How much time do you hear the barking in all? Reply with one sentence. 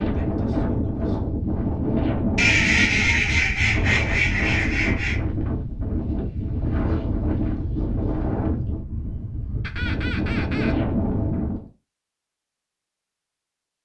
The barking can't be heard in this clip.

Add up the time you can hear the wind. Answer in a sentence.
The wind can be heard for 12 seconds in total.